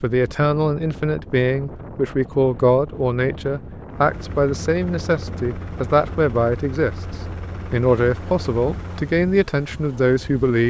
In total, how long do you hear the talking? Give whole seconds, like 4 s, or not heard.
10 s.